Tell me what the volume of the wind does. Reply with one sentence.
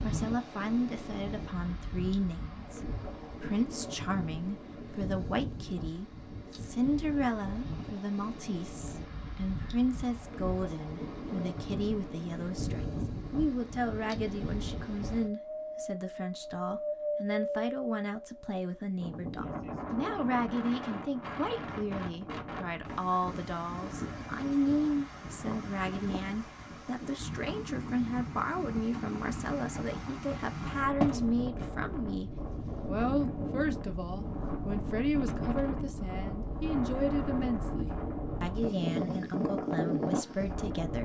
The volume of the wind goes up.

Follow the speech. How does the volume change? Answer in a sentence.
The loudness of the speech stays about the same.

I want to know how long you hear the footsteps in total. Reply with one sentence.
The footsteps can be heard for 2 seconds in total.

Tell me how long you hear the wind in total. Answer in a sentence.
The wind can be heard for 41 seconds in total.